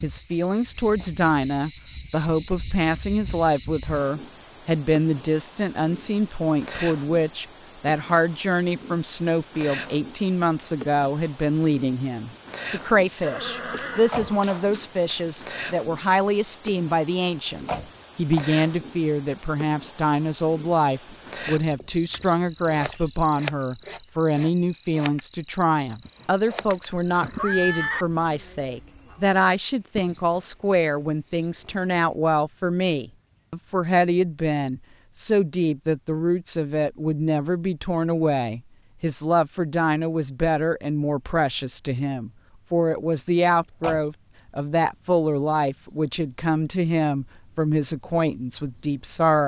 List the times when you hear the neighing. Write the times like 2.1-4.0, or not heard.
13.2-15.2, 26.1-28.1.